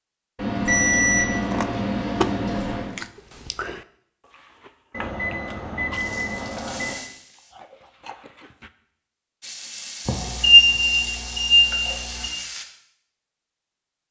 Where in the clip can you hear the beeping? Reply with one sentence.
The beeping can be heard from 0.3 to 2.9 s, from 4.9 to 7.0 s and from 10.1 to 12.3 s.